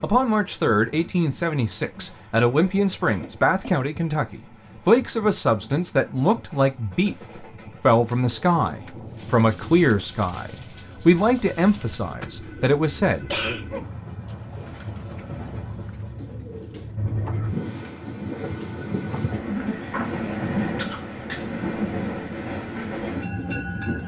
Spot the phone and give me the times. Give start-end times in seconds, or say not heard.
not heard.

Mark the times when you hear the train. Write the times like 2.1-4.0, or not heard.
0.0-24.0.